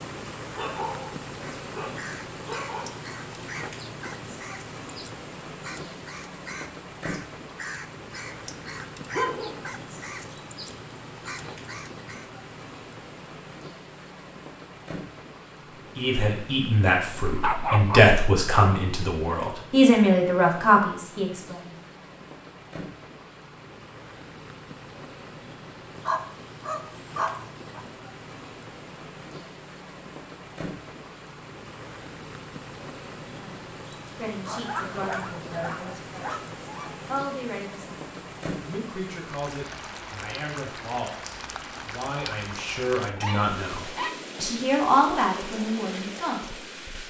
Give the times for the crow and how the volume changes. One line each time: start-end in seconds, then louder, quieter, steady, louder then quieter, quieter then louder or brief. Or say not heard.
1.4-12.3 steady.